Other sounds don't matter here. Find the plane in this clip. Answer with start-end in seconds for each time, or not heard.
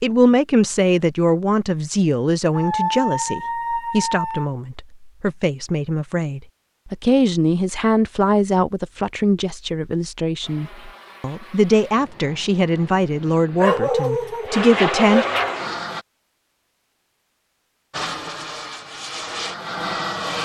10.4-16.1, 17.9-20.3.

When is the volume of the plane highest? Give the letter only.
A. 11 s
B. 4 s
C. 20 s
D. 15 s
D.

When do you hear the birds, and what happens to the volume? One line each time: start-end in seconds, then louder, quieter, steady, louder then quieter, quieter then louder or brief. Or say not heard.
not heard.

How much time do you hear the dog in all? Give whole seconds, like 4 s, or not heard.
4 s.